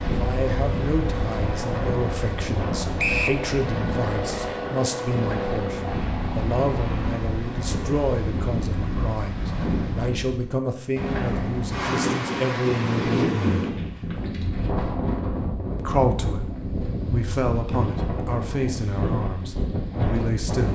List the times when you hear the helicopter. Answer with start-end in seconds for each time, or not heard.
0.0-7.2.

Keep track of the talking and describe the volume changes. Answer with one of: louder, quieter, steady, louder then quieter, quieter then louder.
steady.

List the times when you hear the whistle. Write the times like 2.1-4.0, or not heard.
3.0-3.4.